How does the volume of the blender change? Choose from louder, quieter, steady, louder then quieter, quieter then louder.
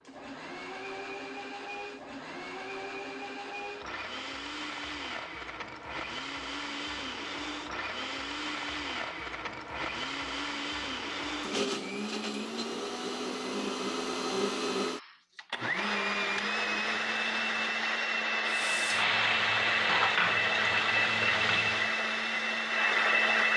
louder.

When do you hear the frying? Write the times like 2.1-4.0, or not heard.
18.4-21.9.